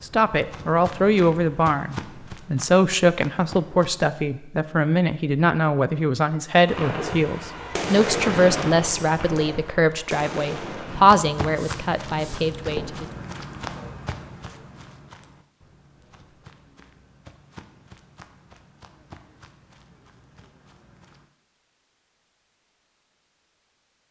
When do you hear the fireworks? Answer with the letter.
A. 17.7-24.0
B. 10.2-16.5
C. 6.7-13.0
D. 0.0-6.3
C.